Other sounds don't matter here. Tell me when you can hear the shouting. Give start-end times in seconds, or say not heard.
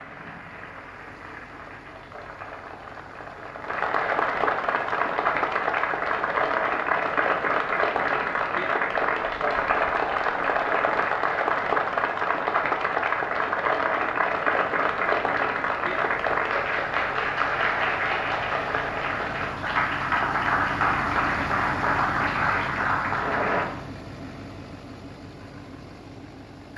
not heard.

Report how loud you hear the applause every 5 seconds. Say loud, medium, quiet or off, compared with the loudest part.
medium, loud, loud, loud, loud, off.